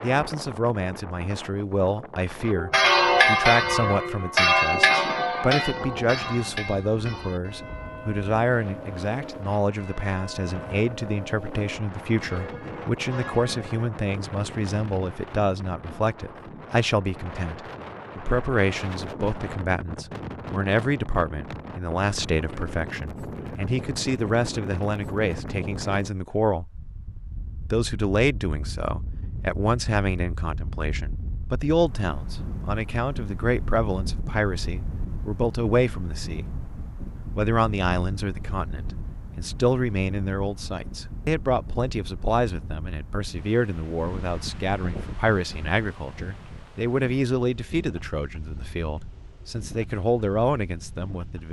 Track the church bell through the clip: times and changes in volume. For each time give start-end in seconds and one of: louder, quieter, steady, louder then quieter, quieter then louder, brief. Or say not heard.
2.5-13.9 quieter.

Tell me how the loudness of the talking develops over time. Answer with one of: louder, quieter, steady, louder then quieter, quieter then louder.
steady.